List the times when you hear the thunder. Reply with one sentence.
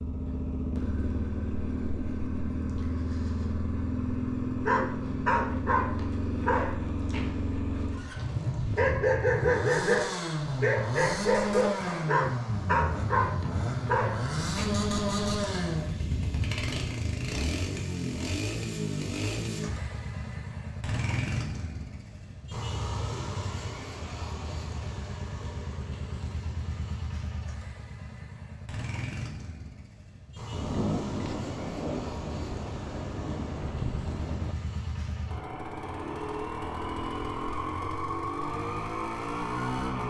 The thunder can be heard from 12.4 to 16.6 s and from 30.5 to 34.5 s.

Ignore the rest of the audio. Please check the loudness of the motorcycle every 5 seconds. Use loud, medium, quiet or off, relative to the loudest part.
loud, loud, loud, loud, medium, medium, medium, loud.